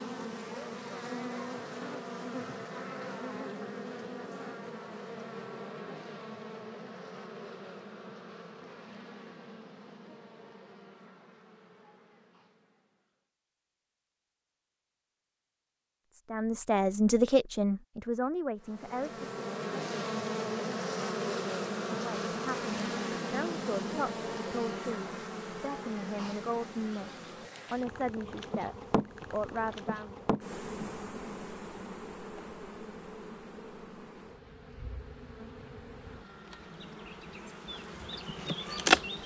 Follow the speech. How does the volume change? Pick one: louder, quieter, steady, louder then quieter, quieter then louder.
quieter.